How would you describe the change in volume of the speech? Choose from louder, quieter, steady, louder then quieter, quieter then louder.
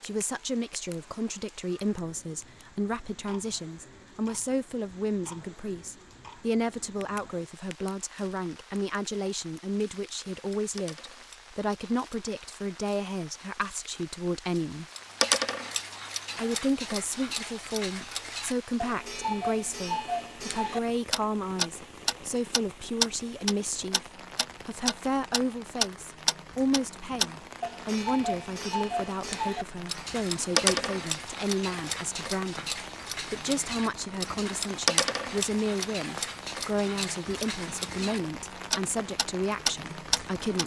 steady.